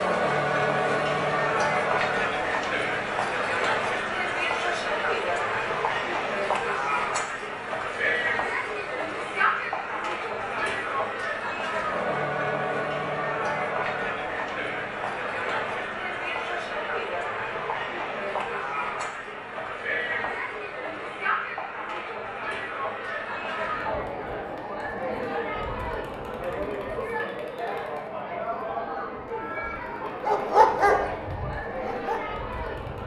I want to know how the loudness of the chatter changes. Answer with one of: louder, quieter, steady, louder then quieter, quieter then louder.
quieter.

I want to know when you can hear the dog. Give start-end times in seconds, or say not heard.
30.2-33.0.